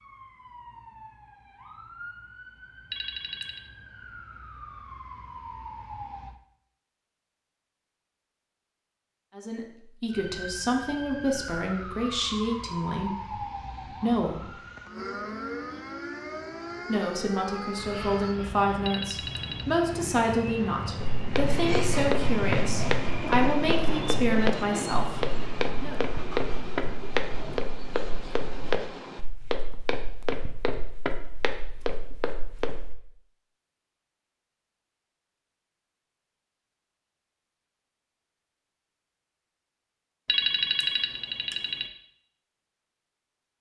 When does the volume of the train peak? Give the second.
22 s.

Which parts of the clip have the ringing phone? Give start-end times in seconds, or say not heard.
2.9-3.6, 18.9-19.6, 40.2-41.9.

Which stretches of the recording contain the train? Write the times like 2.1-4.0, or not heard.
17.8-29.2.